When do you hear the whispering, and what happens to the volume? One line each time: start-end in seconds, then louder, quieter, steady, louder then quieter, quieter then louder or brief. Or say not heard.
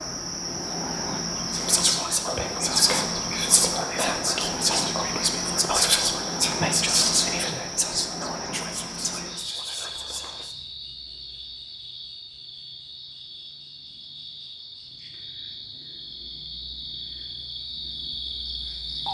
1.5-10.6 quieter.